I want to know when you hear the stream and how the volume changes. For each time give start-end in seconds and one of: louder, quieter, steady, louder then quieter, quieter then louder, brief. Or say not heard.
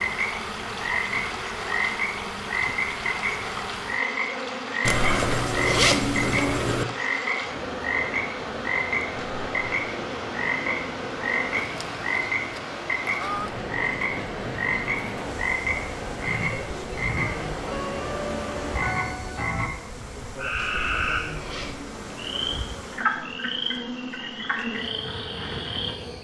0.0-19.0 steady.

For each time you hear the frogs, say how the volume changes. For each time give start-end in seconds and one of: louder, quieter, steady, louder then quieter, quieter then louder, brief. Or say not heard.
0.0-25.9 steady.